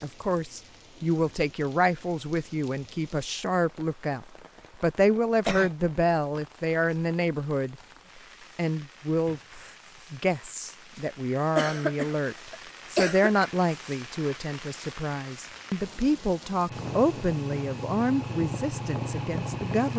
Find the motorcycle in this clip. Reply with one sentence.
The motorcycle can be heard from 16.6 to 19.9 s.